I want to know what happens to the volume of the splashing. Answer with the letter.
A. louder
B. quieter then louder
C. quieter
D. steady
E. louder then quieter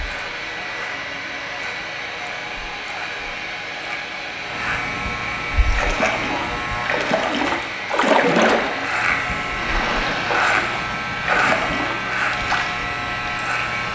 E.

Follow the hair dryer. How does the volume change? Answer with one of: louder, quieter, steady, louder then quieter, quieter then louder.
steady.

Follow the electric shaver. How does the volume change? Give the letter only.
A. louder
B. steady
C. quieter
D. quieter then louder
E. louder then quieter
A.